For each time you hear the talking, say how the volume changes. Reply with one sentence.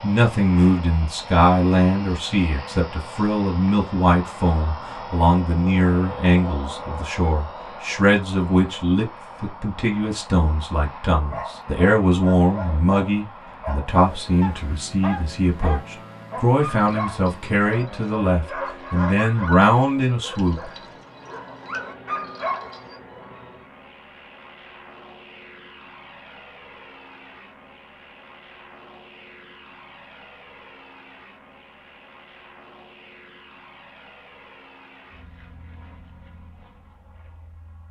The talking can be heard from 0.0 to 20.7 s, at a steady volume.